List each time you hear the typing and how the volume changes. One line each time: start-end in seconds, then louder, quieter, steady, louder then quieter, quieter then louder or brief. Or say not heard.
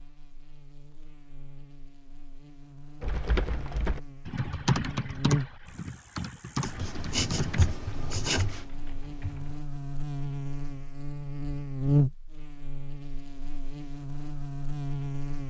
3.0-9.6 louder then quieter.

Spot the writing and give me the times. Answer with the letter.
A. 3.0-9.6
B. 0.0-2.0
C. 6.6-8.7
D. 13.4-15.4
C.